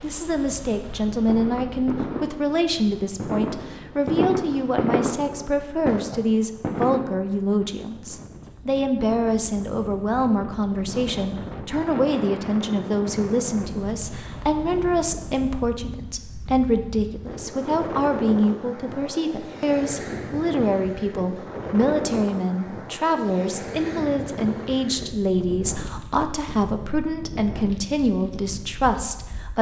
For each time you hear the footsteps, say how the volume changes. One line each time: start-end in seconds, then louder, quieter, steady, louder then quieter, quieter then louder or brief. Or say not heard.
not heard.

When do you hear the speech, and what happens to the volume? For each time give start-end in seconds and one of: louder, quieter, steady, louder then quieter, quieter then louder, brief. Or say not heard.
0.0-29.5 steady.